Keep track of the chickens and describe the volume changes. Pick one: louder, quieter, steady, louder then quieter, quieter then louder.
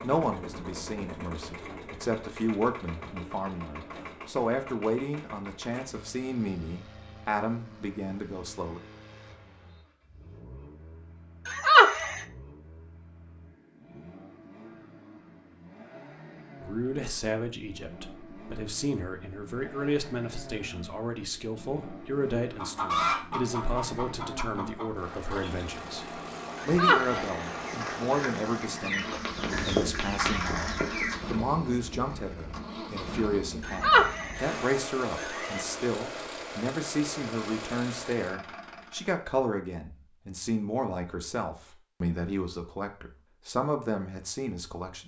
quieter then louder.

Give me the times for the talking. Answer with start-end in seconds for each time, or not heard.
0.0-8.8, 16.6-45.0.